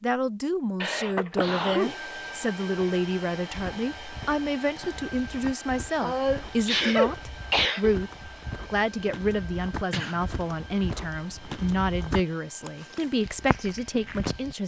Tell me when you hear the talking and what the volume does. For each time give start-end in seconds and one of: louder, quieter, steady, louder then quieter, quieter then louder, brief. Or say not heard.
0.0-14.6 steady.